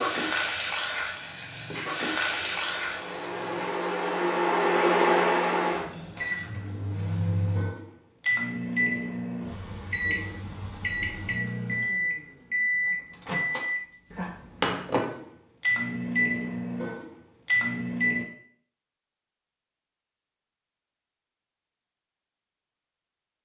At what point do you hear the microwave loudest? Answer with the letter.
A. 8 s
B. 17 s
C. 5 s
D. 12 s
C.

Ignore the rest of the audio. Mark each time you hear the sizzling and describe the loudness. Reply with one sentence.
You can hear the sizzling from 0.0 to 6.5 s, getting quieter.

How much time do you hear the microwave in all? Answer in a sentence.
You can hear the microwave for 16 seconds altogether.